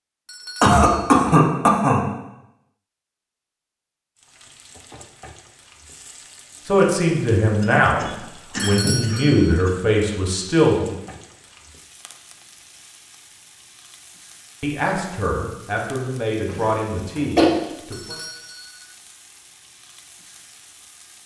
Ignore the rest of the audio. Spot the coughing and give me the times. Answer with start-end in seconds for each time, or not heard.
0.6-2.0, 7.6-9.7, 16.4-17.5.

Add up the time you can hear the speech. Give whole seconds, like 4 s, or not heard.
8 s.